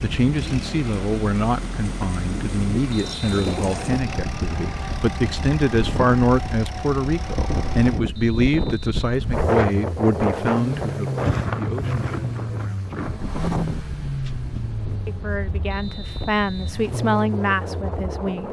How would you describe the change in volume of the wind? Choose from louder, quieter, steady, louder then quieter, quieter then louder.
louder then quieter.